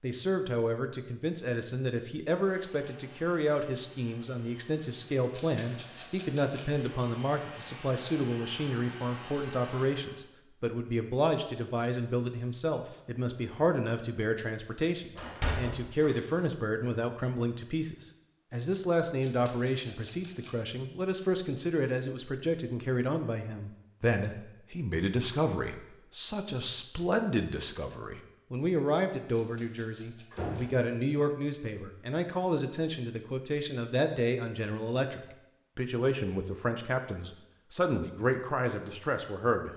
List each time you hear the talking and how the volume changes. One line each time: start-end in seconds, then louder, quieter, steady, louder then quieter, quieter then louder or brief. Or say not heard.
0.0-39.7 steady.